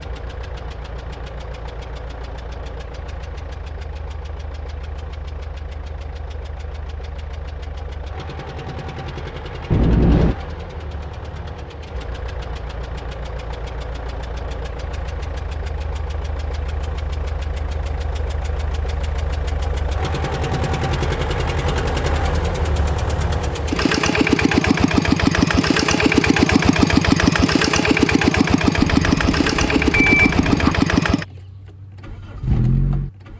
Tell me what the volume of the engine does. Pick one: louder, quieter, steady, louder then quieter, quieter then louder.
louder.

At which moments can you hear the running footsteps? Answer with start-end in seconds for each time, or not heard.
not heard.